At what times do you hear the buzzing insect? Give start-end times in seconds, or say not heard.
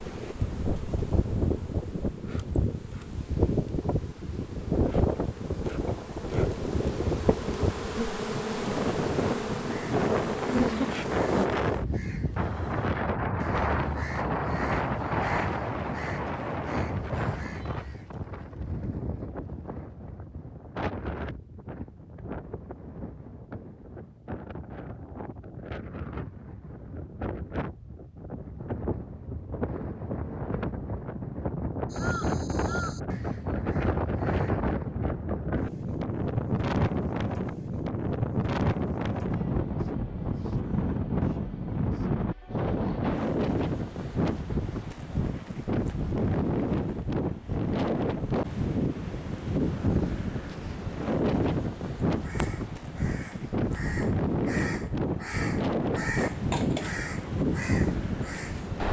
0.0-11.5.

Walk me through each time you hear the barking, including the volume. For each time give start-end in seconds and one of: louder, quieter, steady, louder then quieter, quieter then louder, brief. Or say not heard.
not heard.